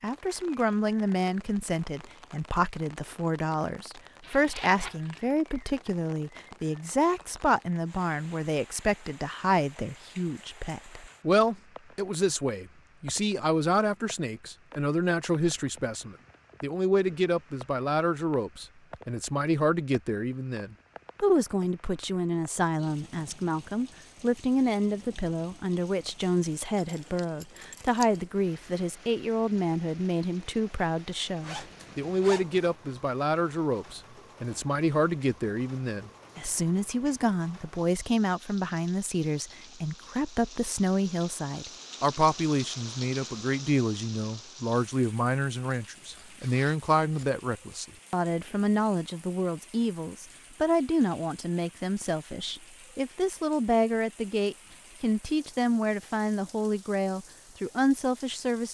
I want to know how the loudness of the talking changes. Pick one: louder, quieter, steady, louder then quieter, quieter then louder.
steady.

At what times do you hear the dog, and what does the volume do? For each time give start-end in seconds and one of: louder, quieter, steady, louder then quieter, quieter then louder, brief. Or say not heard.
not heard.